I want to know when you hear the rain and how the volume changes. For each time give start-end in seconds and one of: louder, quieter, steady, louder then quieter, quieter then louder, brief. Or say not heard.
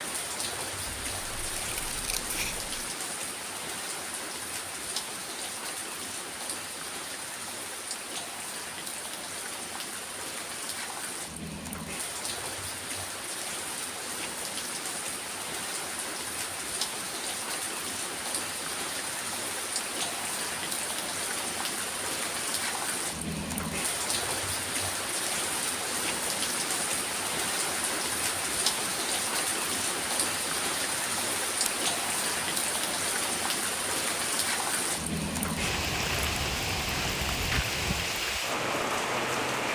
0.0-39.6 louder.